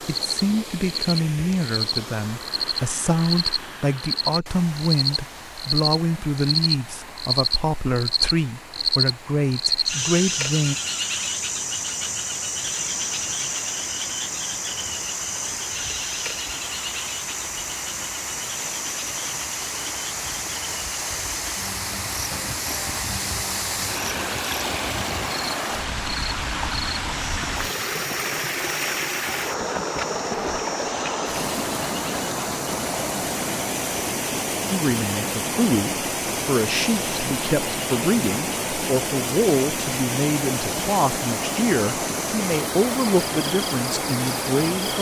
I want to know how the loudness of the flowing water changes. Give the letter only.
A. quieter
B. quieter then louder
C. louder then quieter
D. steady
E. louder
E.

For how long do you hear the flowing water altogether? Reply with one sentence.
You can hear the flowing water for 45 seconds altogether.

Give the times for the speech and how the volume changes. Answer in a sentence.
The speech can be heard from 0.1 to 10.8 s, at a steady volume; and from 34.7 to 44.9 s, at a steady volume.